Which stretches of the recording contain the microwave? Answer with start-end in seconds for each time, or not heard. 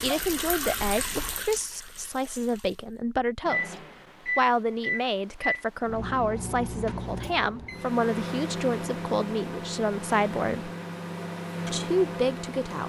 3.5-12.8.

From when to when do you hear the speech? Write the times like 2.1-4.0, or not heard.
0.0-3.8, 4.3-10.7, 11.7-12.8.